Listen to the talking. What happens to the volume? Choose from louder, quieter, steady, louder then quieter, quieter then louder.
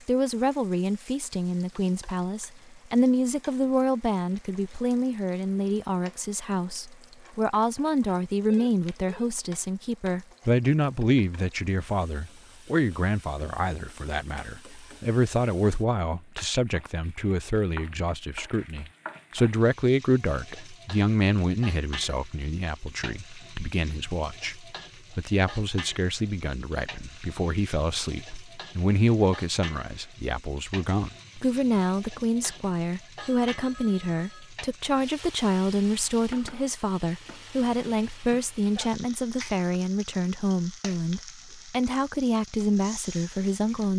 steady.